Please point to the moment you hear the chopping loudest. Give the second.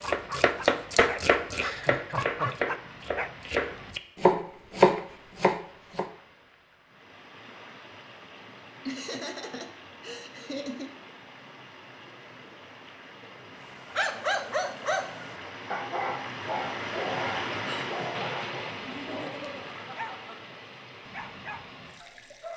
5 s.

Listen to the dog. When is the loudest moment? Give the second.
14 s.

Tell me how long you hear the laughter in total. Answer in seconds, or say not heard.
5 s.